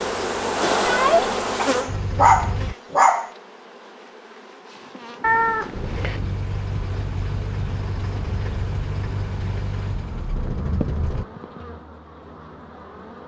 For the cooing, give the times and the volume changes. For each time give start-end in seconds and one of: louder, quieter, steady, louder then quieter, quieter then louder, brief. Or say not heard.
not heard.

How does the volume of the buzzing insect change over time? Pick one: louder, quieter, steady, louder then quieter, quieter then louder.
quieter.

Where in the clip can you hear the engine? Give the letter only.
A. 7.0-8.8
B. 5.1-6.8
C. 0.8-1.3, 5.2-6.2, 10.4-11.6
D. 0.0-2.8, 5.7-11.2
D.